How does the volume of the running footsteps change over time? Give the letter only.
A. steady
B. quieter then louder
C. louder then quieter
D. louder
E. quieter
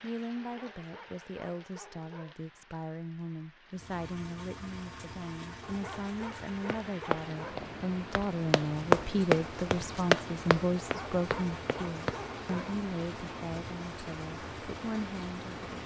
C.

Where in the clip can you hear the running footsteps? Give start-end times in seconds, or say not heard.
6.7-12.2.